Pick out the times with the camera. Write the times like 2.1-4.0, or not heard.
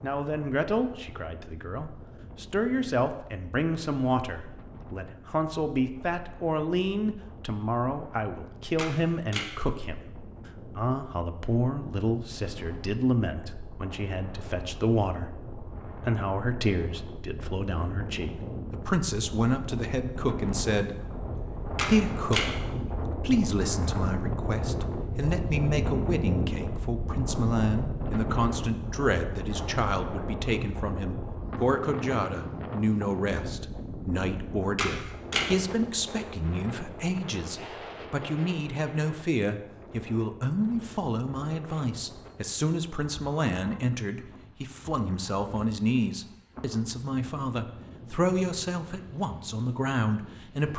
8.8-9.4, 21.8-22.4, 34.8-35.5.